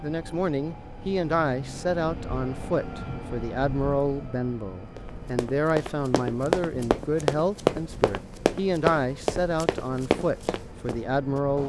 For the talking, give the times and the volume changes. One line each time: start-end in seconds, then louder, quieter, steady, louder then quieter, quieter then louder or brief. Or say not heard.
0.0-11.6 steady.